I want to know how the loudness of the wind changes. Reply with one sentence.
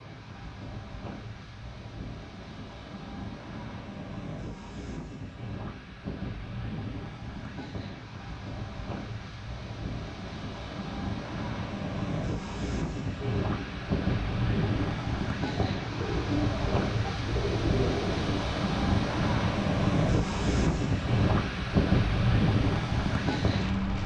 The loudness of the wind goes up.